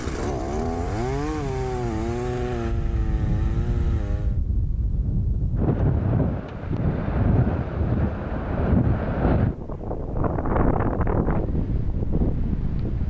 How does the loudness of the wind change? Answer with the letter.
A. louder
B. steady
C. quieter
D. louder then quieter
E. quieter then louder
A.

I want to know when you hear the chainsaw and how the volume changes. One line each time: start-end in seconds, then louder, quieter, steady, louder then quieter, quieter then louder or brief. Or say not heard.
0.0-4.4 quieter.